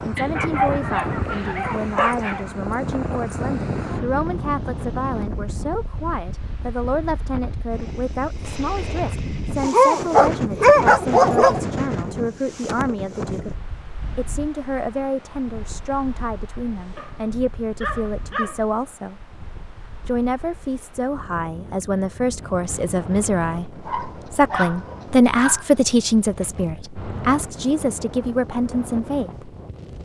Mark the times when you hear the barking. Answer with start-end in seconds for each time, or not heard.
0.1-2.5, 9.6-11.6, 16.9-18.6, 23.9-26.1.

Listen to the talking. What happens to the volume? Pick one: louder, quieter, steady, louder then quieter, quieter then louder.
louder.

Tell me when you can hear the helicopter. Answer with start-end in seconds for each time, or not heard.
not heard.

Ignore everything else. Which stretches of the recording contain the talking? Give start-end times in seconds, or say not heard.
0.0-13.5, 14.2-19.2, 20.1-29.6.